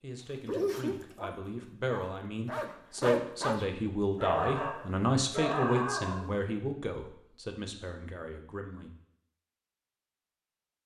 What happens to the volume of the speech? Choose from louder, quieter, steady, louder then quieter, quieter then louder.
louder then quieter.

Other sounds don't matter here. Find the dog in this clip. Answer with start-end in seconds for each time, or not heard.
0.5-6.3.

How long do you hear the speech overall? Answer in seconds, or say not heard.
9 s.